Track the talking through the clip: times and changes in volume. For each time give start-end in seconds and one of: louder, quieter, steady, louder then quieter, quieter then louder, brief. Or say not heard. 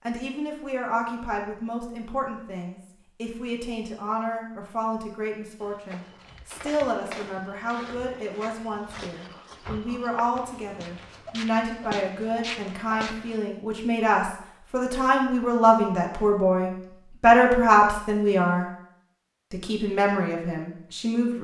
0.1-18.6 louder
19.5-21.4 brief.